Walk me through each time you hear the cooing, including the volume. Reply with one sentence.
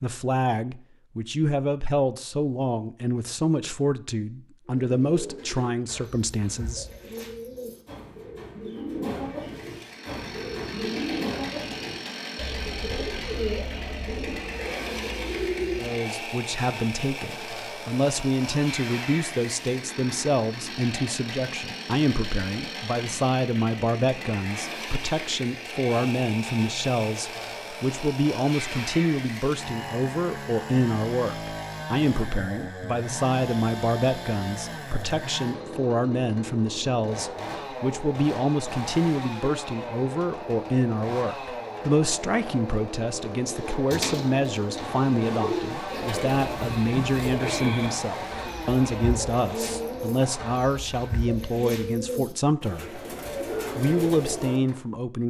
You can hear the cooing from 4.7 to 15.9 s, getting louder; and from 43.5 to 54.8 s, at a steady volume.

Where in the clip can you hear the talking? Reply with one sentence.
The talking can be heard from 0.0 to 6.8 s, from 15.8 to 53.0 s and from 53.8 to 55.2 s.